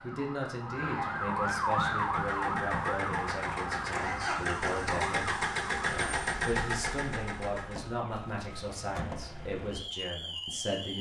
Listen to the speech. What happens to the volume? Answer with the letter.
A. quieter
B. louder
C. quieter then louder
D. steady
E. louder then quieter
D.